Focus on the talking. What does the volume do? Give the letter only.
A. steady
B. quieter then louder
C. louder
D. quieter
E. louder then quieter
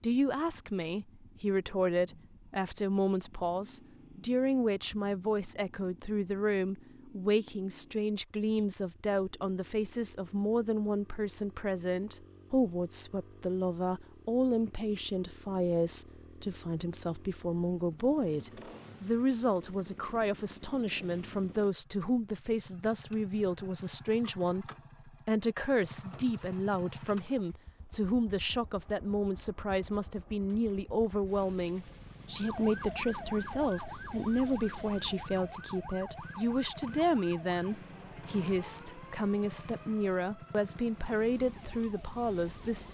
A.